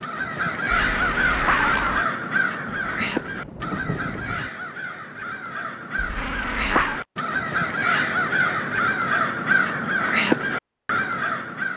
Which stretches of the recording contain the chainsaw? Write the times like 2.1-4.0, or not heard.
not heard.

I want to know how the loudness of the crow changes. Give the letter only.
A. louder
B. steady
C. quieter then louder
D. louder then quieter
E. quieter
C.